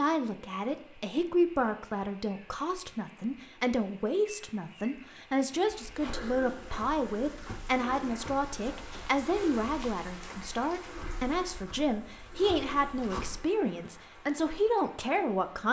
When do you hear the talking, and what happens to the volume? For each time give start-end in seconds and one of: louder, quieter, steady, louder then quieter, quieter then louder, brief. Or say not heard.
0.0-15.6 steady.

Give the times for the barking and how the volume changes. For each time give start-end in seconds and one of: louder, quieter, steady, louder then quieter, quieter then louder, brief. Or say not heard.
not heard.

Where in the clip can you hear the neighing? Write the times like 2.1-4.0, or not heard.
not heard.